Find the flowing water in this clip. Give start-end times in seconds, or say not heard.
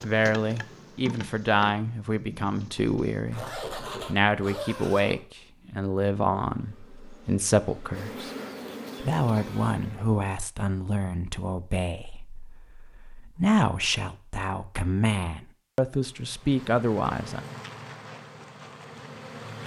not heard.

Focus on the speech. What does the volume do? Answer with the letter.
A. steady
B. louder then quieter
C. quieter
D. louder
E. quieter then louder
A.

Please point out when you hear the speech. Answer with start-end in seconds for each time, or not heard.
0.0-8.3, 9.0-17.4.